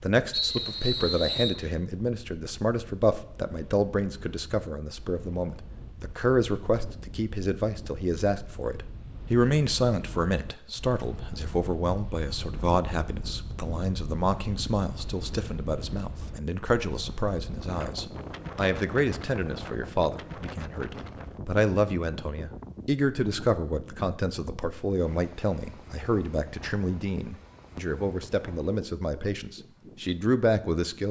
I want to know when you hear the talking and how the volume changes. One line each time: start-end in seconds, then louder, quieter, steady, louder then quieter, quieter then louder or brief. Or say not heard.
0.0-31.0 steady.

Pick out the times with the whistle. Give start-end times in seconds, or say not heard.
0.3-1.6.